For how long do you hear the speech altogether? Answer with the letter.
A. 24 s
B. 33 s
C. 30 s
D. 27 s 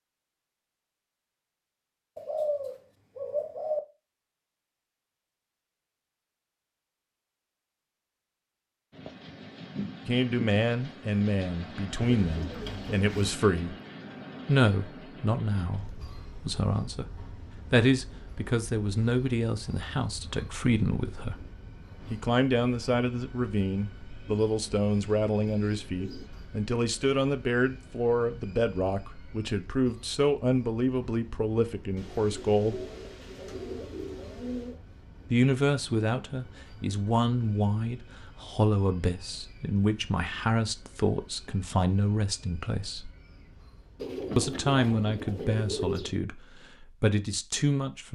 B.